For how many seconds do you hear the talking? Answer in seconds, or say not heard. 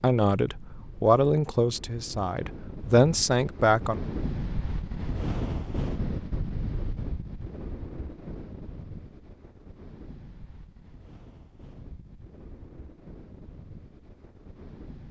4 s.